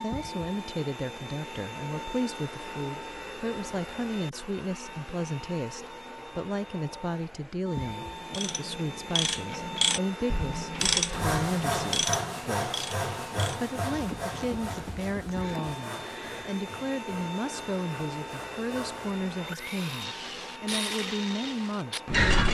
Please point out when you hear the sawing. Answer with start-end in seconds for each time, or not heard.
10.9-20.1.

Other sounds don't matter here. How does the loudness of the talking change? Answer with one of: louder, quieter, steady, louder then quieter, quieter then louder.
steady.